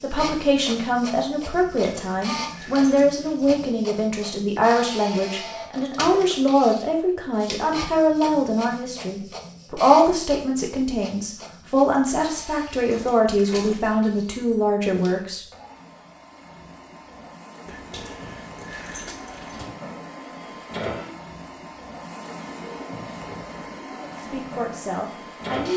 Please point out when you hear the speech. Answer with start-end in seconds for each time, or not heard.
0.0-15.4, 23.9-25.7.